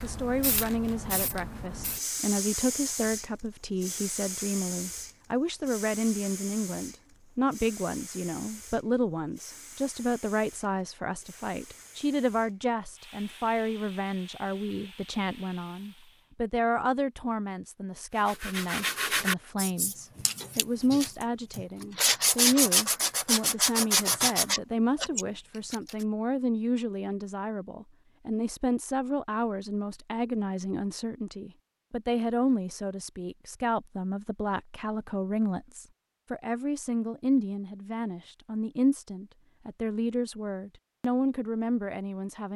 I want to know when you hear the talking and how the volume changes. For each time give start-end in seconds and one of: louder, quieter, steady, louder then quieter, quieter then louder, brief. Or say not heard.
0.0-42.5 steady.